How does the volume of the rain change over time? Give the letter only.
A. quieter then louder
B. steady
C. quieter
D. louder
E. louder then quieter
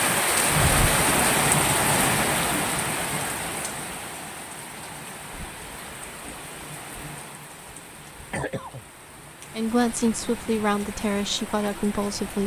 C.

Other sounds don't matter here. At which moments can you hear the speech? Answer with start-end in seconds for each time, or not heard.
9.6-12.4.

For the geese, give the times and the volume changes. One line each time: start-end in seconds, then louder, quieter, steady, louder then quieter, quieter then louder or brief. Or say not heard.
not heard.